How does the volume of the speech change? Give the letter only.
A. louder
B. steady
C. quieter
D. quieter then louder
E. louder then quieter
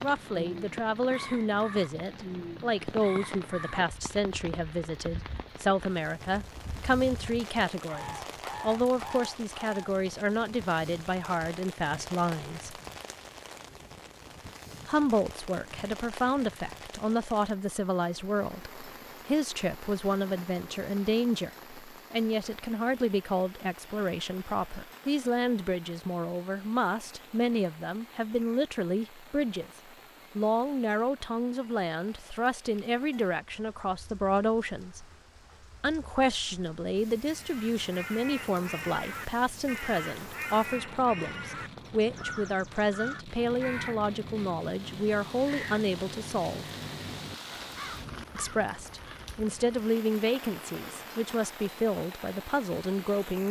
B.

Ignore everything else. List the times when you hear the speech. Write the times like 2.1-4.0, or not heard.
0.0-12.8, 14.8-29.7, 30.4-35.0, 35.8-46.6, 48.4-53.4.